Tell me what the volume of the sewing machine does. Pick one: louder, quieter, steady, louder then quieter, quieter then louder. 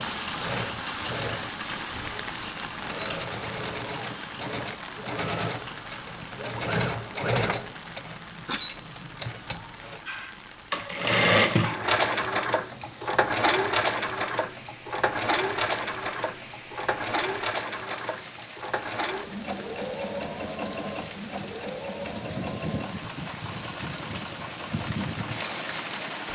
louder then quieter.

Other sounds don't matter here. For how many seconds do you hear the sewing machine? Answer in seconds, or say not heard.
26 s.